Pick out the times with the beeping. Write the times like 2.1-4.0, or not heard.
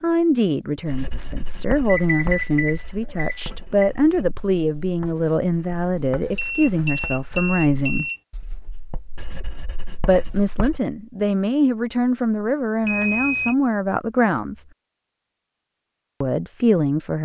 1.9-3.9, 6.3-8.2, 12.8-13.6.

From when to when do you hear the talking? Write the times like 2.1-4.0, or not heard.
0.0-8.1, 10.1-14.7, 16.2-17.1.